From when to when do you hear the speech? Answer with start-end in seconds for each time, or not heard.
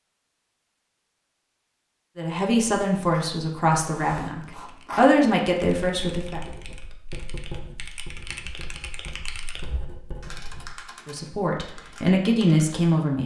2.1-6.4, 11.1-13.2.